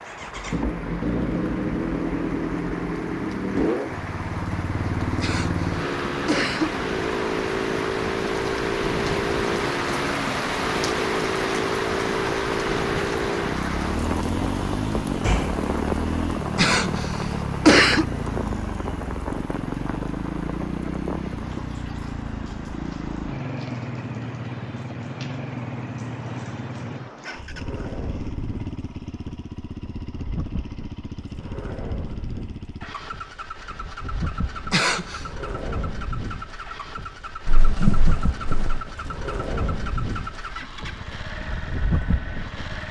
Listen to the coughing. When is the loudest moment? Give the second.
18 s.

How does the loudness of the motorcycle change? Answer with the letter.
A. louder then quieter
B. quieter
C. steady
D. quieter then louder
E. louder
B.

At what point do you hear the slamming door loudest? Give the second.
38 s.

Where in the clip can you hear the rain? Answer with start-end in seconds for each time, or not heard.
0.0-42.8.